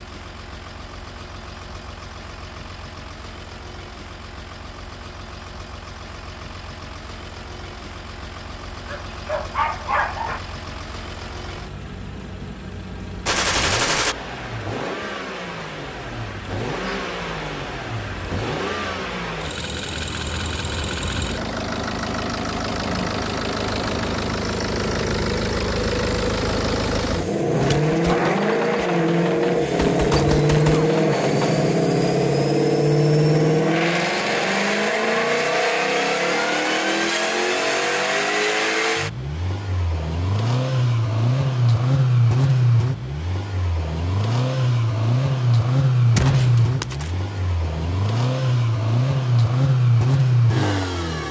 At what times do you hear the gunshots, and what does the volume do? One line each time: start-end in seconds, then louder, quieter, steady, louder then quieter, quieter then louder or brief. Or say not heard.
13.2-14.2 brief
27.6-31.6 quieter then louder
46.0-47.8 brief.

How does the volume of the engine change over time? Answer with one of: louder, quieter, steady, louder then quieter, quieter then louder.
louder.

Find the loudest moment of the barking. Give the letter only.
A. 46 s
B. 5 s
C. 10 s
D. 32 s
C.